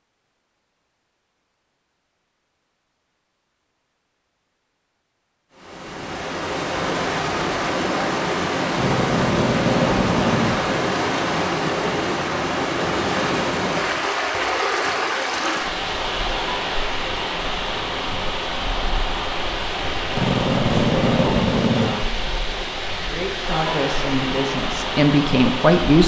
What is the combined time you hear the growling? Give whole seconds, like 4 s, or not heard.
4 s.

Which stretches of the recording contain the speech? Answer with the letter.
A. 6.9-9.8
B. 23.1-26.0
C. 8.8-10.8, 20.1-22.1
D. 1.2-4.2
B.